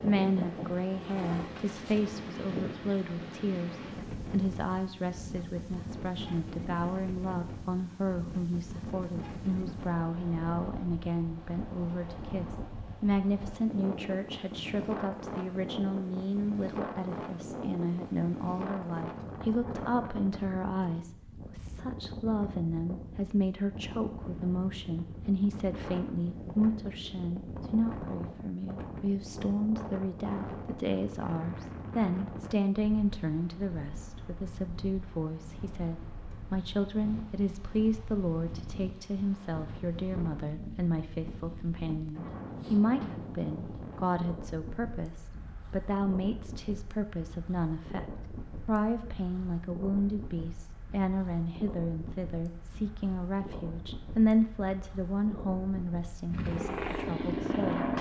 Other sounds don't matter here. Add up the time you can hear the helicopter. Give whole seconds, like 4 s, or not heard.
4 s.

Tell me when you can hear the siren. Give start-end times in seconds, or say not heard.
not heard.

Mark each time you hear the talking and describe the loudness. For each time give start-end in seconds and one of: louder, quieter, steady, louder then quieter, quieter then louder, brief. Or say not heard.
0.0-57.9 steady.